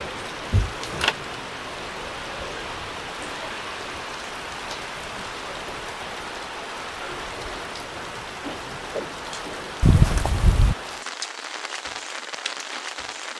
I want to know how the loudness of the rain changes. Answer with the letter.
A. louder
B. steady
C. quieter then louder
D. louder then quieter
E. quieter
B.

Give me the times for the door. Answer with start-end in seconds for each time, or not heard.
0.5-1.1, 9.8-10.8.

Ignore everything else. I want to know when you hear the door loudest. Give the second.
10 s.